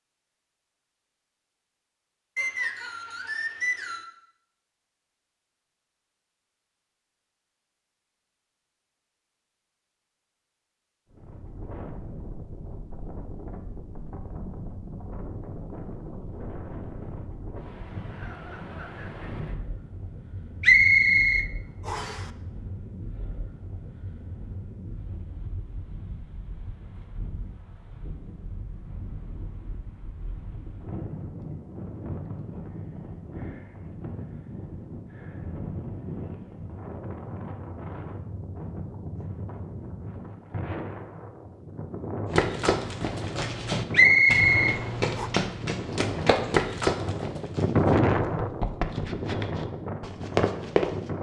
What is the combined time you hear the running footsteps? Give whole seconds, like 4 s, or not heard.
9 s.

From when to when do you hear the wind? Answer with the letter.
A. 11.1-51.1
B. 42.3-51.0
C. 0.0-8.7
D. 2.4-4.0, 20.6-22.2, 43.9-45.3
A.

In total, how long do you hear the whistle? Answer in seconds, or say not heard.
5 s.